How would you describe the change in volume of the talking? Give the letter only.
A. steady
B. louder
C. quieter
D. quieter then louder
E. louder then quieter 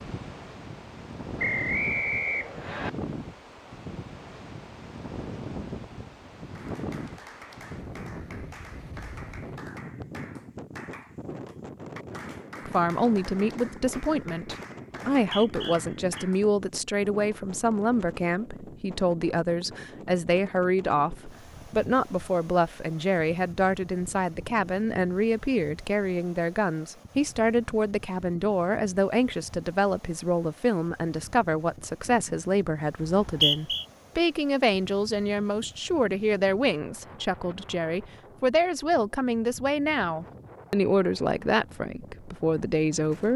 A.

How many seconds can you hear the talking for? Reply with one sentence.
The talking can be heard for 31 seconds in total.